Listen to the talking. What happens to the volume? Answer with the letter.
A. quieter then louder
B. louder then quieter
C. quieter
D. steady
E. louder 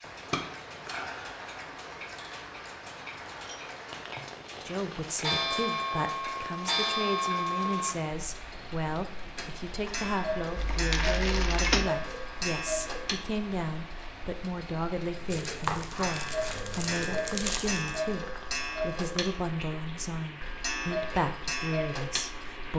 D.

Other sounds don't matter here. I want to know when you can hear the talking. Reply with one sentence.
You can hear the talking from 4.7 to 22.7 s.